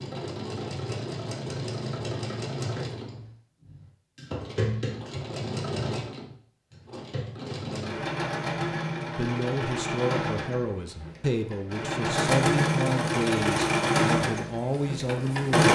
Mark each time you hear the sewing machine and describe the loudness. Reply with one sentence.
The sewing machine can be heard from 0.0 to 15.7 s, getting louder.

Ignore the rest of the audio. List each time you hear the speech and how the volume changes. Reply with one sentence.
You can hear the speech from 9.1 to 15.7 s, at a steady volume.